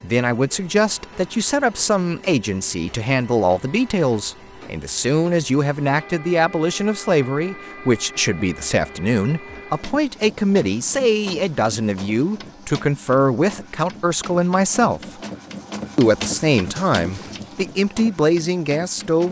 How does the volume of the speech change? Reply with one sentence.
The loudness of the speech stays about the same.